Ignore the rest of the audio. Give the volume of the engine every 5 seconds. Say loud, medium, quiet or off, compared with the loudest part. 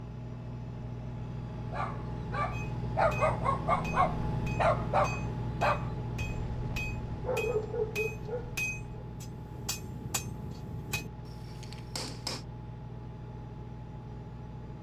loud, loud, medium.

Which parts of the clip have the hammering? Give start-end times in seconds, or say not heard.
2.5-12.4.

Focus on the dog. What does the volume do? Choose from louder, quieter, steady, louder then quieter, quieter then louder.
quieter then louder.